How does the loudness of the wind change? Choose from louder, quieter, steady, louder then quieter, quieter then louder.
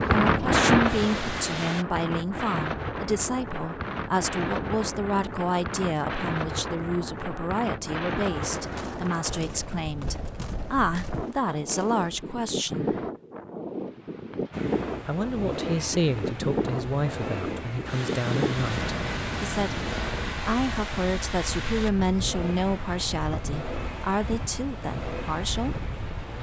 quieter.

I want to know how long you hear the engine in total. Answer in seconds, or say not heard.
14 s.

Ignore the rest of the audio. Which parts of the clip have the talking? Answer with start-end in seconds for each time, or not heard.
0.0-12.9, 15.1-19.8, 20.4-25.9.